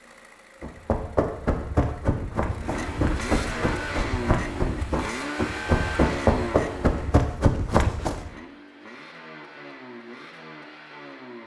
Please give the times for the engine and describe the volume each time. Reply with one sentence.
You can hear the engine from 0.0 to 11.4 s, getting louder then quieter.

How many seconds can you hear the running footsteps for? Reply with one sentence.
You can hear the running footsteps for 8 seconds altogether.